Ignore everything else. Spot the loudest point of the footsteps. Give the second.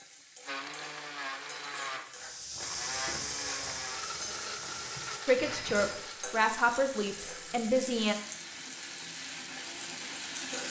3 s.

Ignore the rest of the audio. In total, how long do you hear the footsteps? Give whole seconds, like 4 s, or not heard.
4 s.